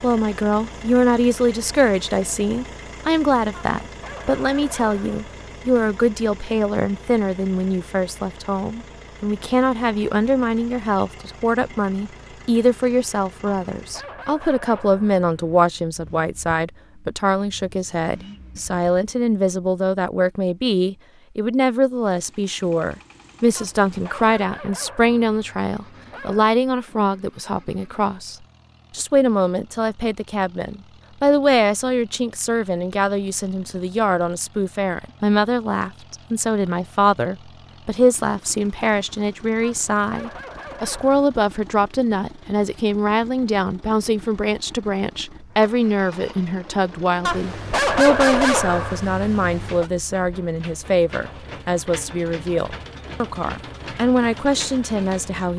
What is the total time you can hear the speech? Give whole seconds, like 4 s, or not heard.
55 s.